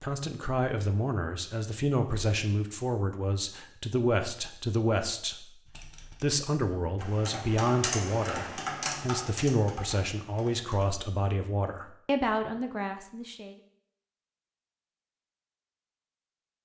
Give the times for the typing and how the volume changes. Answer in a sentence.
The typing can be heard from 5.7 to 10.9 s, getting louder then quieter.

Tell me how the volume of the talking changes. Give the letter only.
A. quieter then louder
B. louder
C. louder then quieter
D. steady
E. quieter
D.